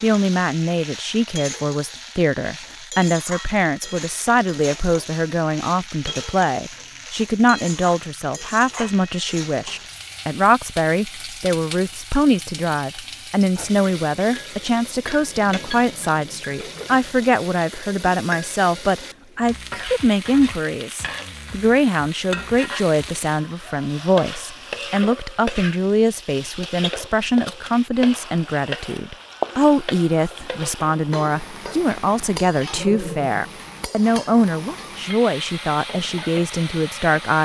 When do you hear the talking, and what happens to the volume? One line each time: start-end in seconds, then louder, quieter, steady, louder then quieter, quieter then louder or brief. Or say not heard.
0.0-37.3 steady.